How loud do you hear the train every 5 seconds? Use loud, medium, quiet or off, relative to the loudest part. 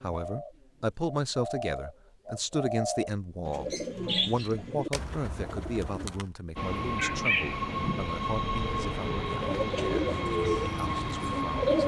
off, loud, loud.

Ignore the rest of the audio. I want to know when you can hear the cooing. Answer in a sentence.
The cooing can be heard from 0.0 to 6.3 s and from 9.4 to 11.8 s.